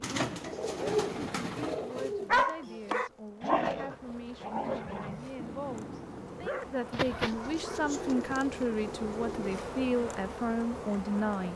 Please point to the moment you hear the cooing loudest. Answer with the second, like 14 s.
1 s.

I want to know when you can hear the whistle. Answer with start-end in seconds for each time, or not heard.
not heard.